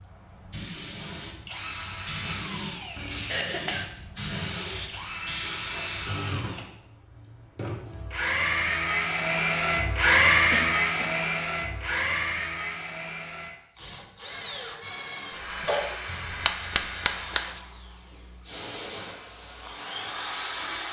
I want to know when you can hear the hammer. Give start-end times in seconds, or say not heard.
16.1-17.6.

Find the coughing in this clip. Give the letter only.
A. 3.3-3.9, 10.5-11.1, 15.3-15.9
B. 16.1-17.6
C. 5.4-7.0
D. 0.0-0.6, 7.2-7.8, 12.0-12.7
A.